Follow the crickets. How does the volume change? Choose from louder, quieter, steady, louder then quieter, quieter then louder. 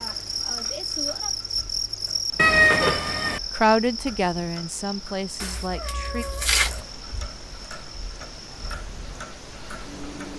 quieter.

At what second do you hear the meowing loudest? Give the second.
3 s.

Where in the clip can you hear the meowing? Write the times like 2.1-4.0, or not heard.
2.4-3.4, 5.4-6.8.